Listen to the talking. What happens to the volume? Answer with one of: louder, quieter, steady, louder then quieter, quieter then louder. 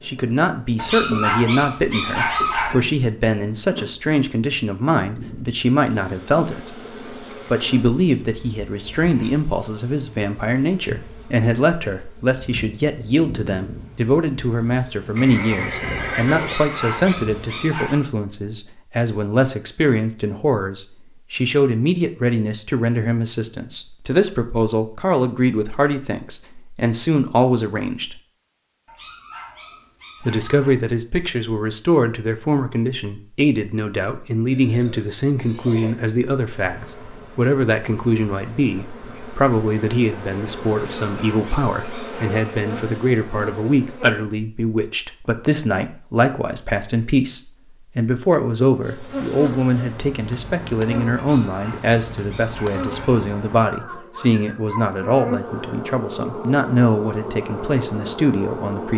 steady.